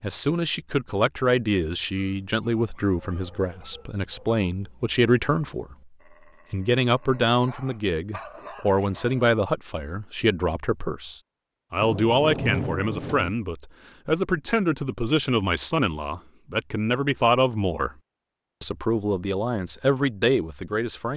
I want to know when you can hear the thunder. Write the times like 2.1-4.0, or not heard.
11.8-13.3.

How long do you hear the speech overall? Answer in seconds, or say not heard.
20 s.